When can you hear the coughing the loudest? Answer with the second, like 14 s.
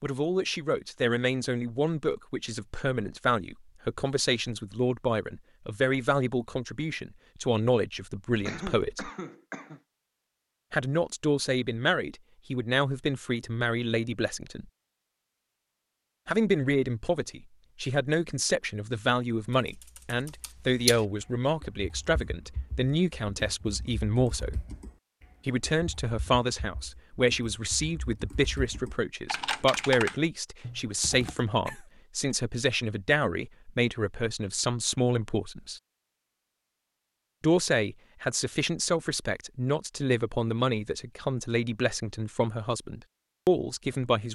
9 s.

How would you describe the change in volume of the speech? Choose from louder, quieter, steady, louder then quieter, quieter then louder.
steady.